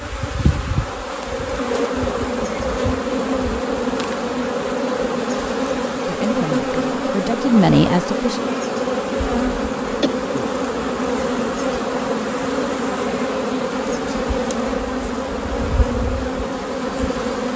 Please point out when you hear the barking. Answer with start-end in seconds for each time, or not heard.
not heard.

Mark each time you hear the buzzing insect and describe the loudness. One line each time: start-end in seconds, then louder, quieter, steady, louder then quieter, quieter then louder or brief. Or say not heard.
0.0-17.5 steady.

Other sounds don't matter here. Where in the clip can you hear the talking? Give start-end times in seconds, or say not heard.
6.0-8.4.